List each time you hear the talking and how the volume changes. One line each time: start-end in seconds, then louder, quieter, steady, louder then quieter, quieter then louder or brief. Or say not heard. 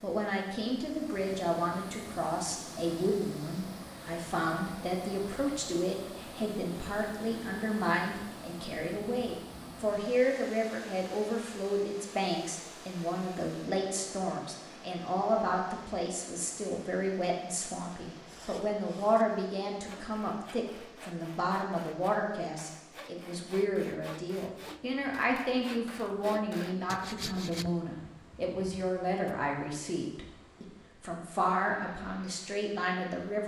0.0-33.4 steady.